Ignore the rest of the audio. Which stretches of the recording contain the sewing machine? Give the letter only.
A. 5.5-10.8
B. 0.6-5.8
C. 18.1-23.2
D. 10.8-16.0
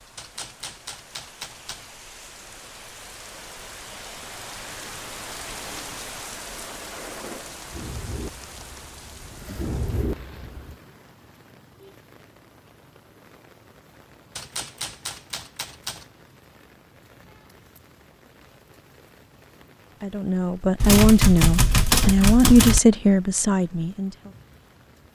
A.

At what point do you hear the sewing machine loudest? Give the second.
10 s.